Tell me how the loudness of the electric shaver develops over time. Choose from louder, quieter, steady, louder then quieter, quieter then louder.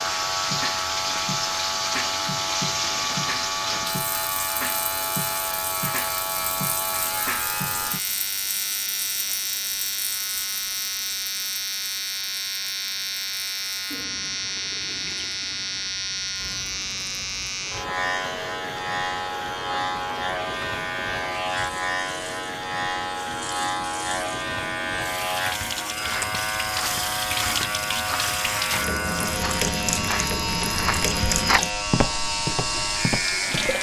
steady.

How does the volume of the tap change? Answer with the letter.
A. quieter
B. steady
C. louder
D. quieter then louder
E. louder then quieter
D.